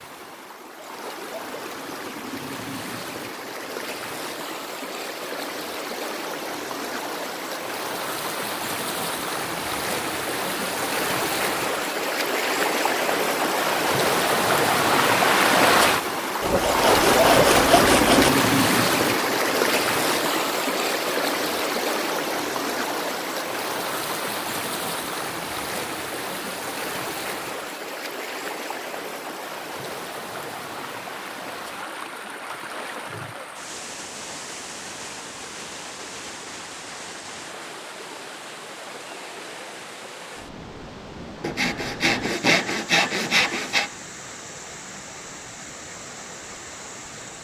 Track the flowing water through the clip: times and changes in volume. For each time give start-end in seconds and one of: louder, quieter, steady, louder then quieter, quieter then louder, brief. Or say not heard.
0.0-47.3 louder then quieter.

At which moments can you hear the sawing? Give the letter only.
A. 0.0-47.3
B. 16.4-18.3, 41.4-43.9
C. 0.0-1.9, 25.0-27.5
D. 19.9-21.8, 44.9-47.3
B.